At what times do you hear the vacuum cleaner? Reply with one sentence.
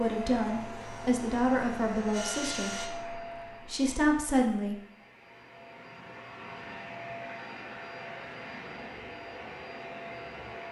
The vacuum cleaner can be heard from 0.0 to 10.6 s.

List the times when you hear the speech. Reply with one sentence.
The speech can be heard from 0.0 to 4.8 s.